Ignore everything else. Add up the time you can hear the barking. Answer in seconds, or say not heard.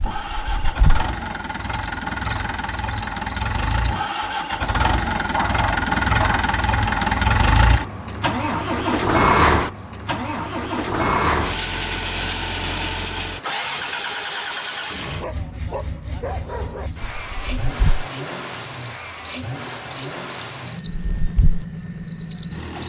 3 s.